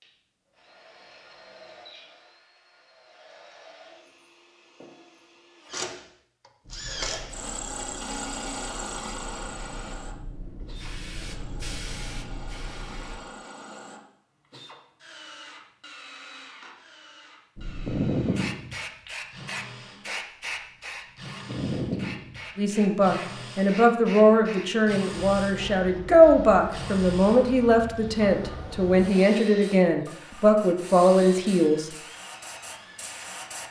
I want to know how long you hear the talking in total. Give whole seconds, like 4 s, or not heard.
9 s.